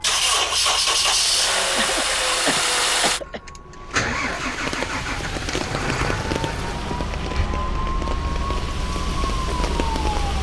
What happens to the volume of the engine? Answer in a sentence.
The loudness of the engine goes down.